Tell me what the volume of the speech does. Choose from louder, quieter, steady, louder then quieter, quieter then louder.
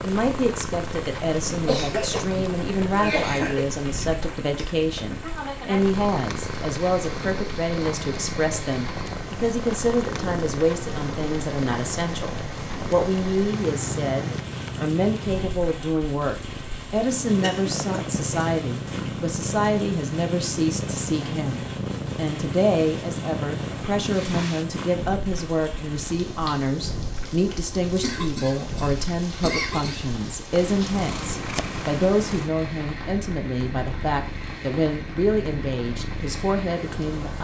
steady.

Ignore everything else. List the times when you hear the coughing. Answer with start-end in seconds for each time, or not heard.
1.6-3.6, 17.4-18.0, 27.9-30.1.